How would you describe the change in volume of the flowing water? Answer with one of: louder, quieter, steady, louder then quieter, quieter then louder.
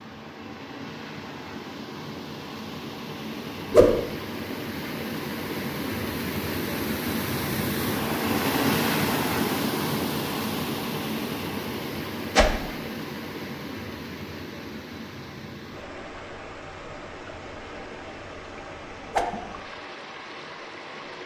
louder then quieter.